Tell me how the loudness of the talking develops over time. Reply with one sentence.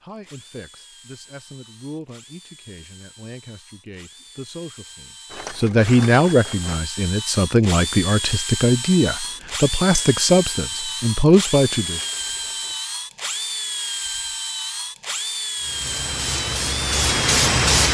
The volume of the talking goes up.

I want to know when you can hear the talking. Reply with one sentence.
You can hear the talking from 0.0 to 12.1 s.